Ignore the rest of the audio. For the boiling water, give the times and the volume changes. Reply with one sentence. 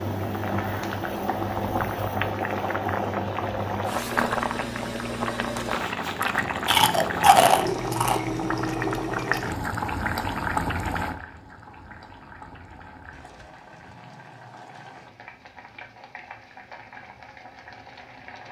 You can hear the boiling water from 0.0 to 18.4 s, getting quieter.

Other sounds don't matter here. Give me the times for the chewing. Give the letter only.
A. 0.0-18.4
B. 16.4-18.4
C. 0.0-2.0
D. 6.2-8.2
D.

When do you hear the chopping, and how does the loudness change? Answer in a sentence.
You can't hear the chopping here.